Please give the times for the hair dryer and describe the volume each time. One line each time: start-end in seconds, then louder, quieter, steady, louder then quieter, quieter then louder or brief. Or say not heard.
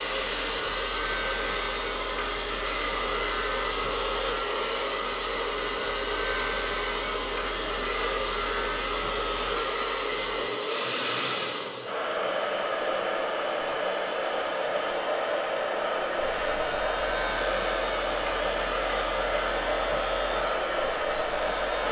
0.0-21.8 steady.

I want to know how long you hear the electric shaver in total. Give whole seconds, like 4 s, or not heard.
16 s.